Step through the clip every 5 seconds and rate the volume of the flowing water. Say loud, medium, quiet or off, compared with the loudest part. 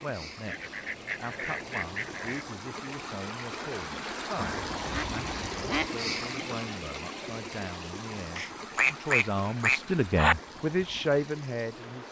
loud, loud, medium.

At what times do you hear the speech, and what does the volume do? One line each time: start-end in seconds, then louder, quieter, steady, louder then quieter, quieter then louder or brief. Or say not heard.
0.0-12.0 louder.